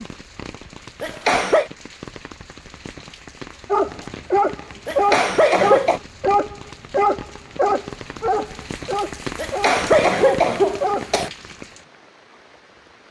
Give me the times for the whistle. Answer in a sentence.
You can't hear the whistle here.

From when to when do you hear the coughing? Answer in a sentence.
The coughing can be heard from 1.0 to 1.7 s, from 4.8 to 6.0 s and from 9.3 to 11.3 s.